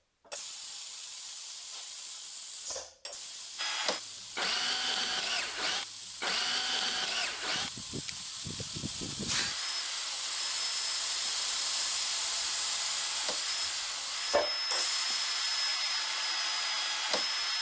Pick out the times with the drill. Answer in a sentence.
The drill can be heard from 3.5 to 17.5 s.